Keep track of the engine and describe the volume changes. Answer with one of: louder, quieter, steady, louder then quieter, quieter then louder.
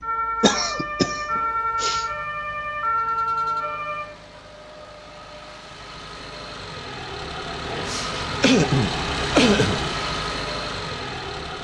louder.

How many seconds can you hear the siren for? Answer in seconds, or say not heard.
4 s.